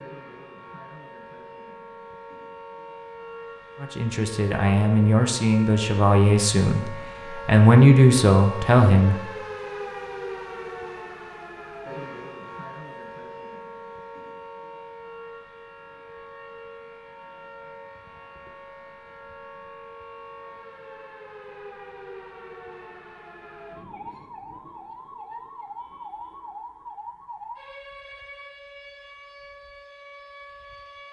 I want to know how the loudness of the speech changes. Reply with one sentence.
The volume of the speech goes up.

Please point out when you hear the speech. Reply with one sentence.
The speech can be heard from 3.8 to 9.2 s.